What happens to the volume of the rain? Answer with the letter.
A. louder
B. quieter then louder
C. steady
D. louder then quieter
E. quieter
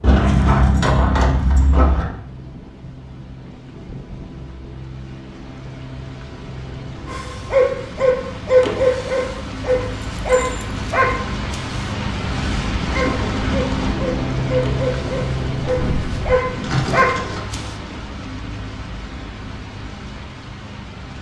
D.